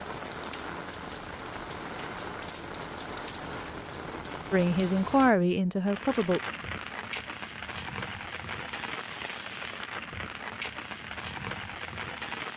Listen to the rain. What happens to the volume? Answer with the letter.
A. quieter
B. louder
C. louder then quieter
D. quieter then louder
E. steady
E.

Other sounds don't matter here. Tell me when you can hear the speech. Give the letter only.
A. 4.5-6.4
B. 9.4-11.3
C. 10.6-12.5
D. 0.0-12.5
A.